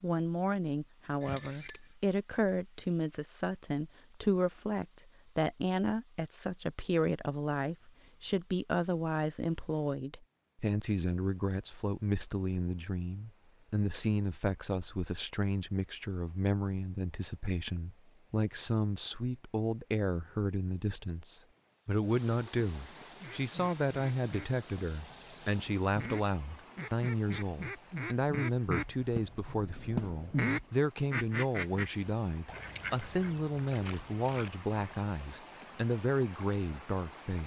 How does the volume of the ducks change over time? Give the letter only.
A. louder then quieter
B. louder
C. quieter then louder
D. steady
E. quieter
A.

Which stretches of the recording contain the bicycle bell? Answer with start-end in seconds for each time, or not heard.
1.2-1.9.